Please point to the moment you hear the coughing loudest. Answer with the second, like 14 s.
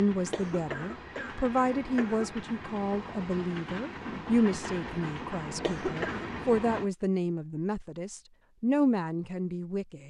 6 s.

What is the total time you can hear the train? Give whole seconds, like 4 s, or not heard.
7 s.